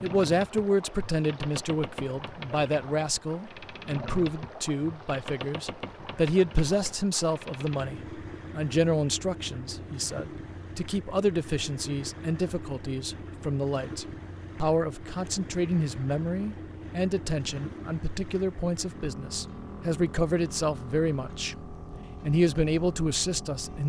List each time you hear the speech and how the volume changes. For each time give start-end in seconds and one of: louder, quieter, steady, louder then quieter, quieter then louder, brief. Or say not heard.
0.0-23.8 steady.